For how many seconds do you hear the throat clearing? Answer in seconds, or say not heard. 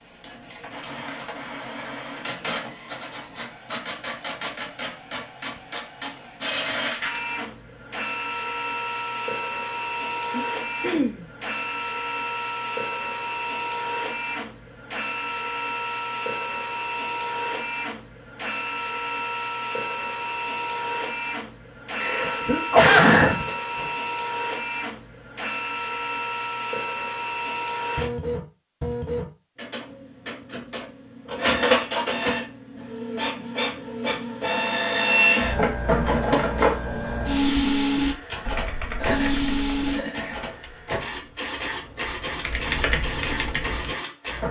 4 s.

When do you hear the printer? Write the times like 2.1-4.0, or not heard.
0.0-44.4.